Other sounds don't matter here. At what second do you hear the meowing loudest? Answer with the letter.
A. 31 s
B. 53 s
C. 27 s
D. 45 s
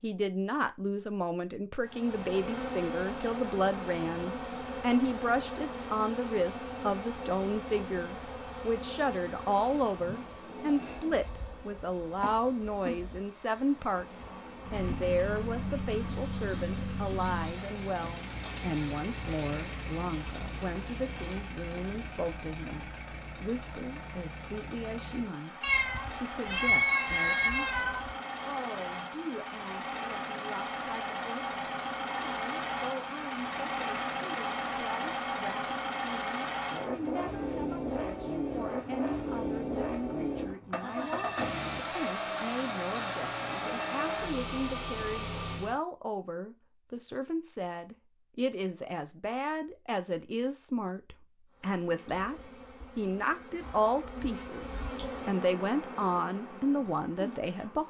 C.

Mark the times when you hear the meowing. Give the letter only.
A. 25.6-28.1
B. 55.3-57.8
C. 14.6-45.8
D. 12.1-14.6
A.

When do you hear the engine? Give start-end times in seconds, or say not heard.
14.6-45.8.